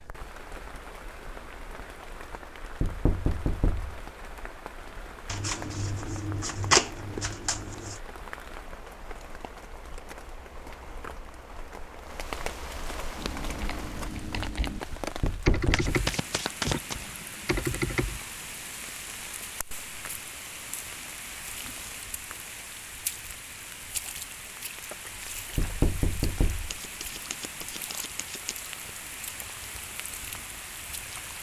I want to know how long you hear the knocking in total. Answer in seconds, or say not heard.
3 s.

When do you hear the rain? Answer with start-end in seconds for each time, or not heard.
0.0-31.3.